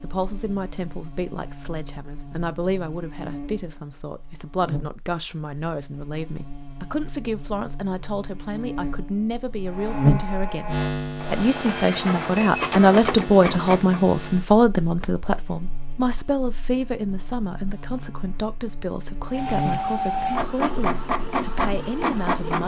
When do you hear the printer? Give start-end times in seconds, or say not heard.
9.7-14.0, 19.3-22.6.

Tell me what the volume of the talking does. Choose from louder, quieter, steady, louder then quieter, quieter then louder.
louder then quieter.